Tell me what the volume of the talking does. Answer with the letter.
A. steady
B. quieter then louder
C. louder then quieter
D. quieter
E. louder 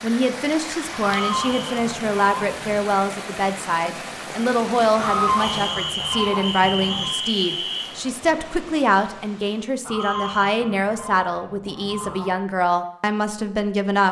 A.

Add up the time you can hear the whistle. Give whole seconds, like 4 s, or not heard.
4 s.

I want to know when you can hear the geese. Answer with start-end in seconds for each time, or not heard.
1.0-2.9, 5.0-7.2, 9.8-12.4.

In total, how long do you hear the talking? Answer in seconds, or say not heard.
14 s.